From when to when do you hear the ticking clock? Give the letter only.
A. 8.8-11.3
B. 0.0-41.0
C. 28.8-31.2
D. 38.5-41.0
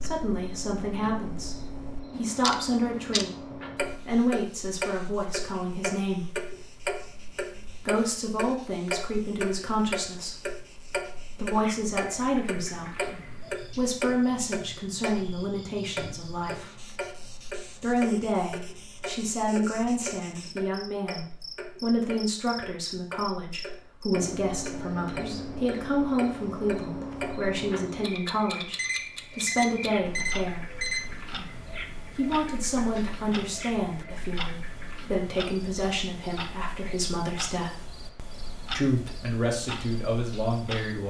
B.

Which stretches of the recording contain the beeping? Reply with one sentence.
You can hear the beeping from 28.8 to 31.2 s.